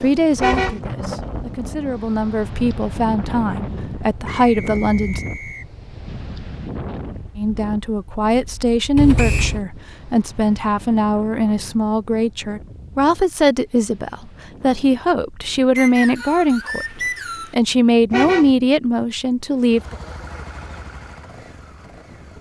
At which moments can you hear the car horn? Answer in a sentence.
The car horn can be heard from 0.3 to 0.8 s, from 8.9 to 9.7 s and from 18.1 to 18.6 s.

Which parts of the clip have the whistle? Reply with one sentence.
You can hear the whistle from 4.2 to 5.7 s, from 9.2 to 9.6 s and from 15.8 to 17.6 s.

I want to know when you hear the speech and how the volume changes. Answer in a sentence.
You can hear the speech from 0.0 to 5.2 s, getting louder; and from 7.3 to 19.9 s, at a steady volume.